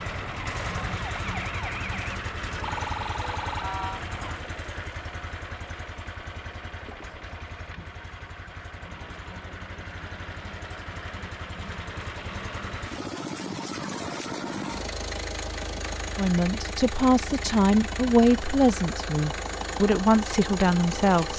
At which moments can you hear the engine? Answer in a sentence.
You can hear the engine from 0.0 to 21.3 s.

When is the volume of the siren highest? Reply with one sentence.
The loudest moment of the siren is at 3 seconds.